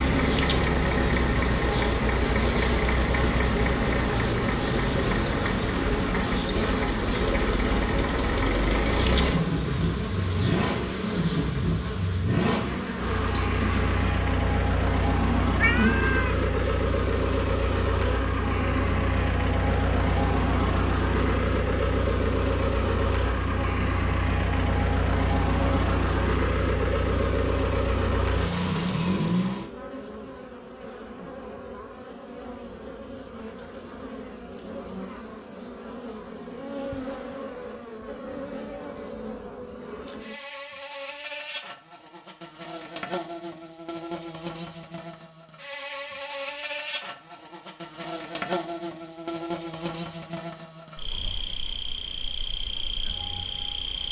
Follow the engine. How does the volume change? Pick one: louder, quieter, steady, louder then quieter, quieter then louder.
steady.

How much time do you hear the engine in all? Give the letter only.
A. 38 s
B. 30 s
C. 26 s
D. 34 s
B.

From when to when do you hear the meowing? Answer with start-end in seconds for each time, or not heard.
15.6-16.4.